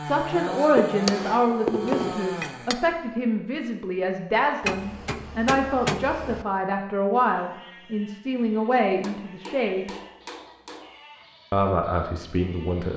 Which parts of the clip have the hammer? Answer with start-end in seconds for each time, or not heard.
0.7-2.8, 4.6-6.5, 8.8-11.0.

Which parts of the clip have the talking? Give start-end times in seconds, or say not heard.
0.0-9.9, 11.5-12.9.